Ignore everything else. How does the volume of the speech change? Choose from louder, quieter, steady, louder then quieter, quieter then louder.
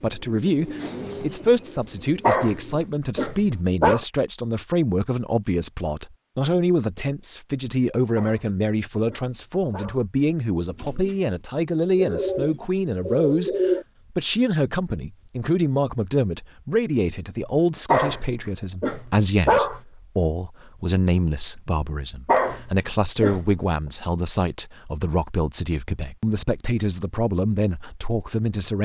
steady.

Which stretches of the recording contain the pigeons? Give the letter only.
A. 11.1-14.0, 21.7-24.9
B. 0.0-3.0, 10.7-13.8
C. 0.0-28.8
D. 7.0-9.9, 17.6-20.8
B.